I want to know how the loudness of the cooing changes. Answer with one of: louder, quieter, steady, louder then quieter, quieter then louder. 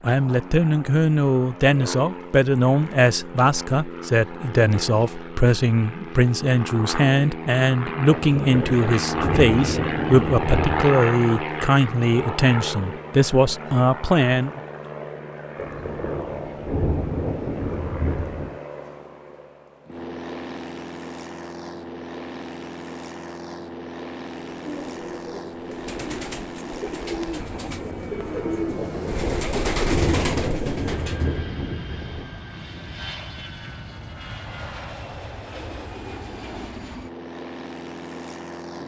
louder.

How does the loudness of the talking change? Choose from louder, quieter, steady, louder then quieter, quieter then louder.
steady.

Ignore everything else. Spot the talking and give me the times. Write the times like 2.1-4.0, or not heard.
0.0-14.6.